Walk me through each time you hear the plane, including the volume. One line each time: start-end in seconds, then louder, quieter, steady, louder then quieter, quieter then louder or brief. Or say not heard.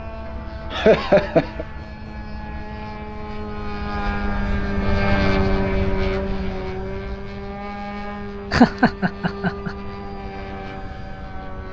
0.0-11.6 louder then quieter.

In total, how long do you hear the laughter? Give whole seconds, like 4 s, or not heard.
2 s.